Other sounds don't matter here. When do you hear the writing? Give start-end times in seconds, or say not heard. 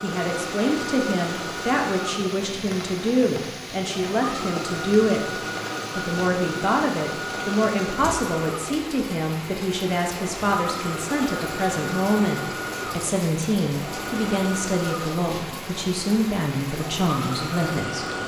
not heard.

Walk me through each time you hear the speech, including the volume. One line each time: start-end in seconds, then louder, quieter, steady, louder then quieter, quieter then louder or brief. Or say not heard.
0.0-18.1 steady.